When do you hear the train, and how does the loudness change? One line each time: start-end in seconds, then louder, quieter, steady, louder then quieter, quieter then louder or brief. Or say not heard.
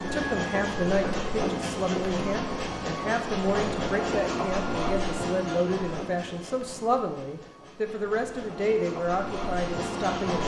0.0-10.4 quieter then louder.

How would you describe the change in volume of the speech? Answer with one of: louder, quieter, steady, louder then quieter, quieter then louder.
steady.